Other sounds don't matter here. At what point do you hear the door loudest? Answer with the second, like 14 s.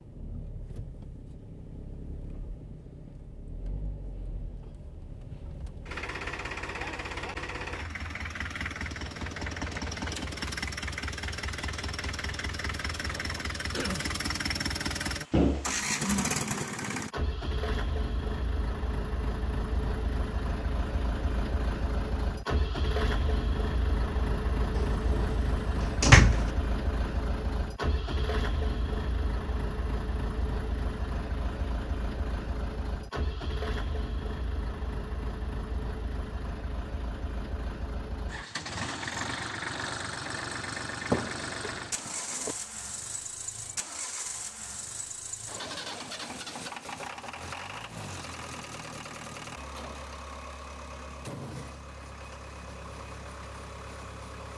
26 s.